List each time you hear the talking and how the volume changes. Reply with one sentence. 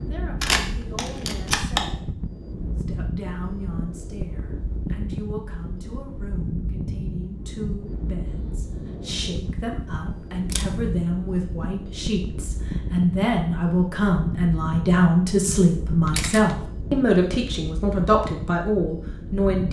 You can hear the talking from 0.0 to 19.6 s, getting louder.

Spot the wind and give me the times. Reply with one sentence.
You can hear the wind from 0.0 to 19.6 s.